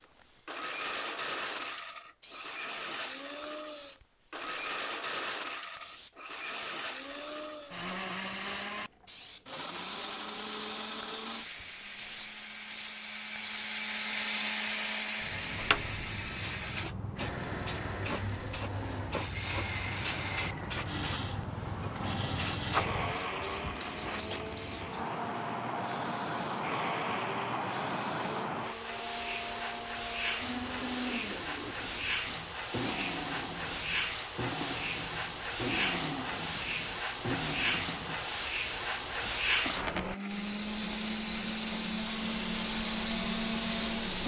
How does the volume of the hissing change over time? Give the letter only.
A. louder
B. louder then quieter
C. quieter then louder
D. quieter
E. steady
A.